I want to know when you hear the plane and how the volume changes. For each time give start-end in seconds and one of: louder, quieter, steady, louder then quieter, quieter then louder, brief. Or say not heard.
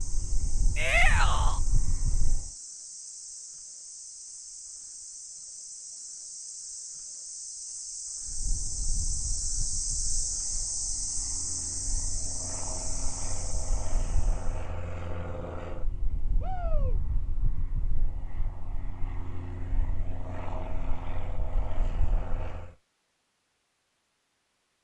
0.0-2.5 brief
8.2-22.7 louder.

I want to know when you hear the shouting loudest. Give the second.
1 s.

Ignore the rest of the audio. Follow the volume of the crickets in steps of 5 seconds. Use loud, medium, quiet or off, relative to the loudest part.
medium, loud, loud, off, off.